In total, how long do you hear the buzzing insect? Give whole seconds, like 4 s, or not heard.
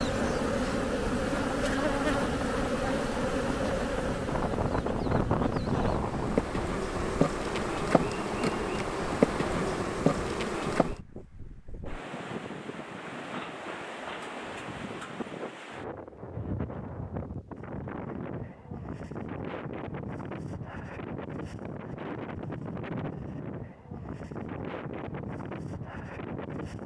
11 s.